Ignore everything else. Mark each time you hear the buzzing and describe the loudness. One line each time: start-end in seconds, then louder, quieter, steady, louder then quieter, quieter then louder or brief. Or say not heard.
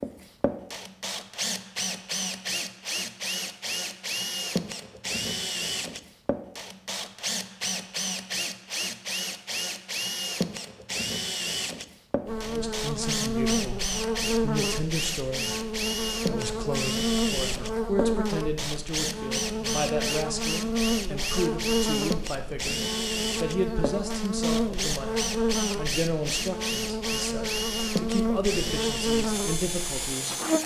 12.2-30.6 steady.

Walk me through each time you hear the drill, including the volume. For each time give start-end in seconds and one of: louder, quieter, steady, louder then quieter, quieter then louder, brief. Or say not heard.
0.0-30.6 steady.